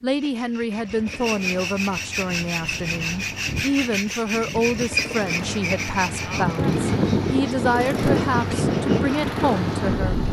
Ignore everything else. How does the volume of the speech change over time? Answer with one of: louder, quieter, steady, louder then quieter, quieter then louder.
steady.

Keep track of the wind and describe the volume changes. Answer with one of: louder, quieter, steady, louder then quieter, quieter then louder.
louder.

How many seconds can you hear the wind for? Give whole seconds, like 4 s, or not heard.
8 s.